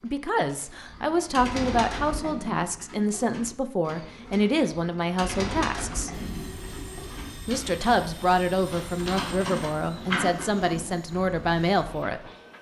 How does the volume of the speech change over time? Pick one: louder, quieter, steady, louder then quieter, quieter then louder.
steady.